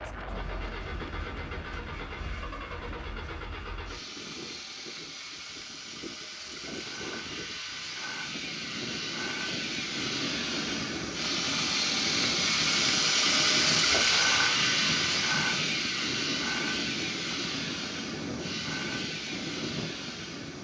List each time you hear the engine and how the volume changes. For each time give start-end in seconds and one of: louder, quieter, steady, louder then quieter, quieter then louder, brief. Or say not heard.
0.1-20.6 louder then quieter.